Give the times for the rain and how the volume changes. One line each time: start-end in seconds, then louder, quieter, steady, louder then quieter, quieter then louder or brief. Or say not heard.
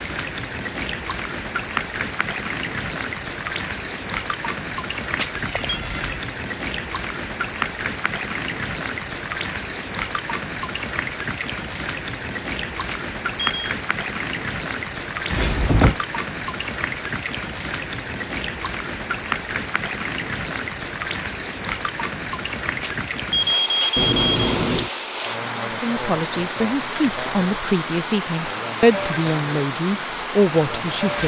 0.0-31.2 steady.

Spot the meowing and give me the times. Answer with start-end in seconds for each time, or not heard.
5.3-6.2, 15.3-15.9, 23.9-24.9.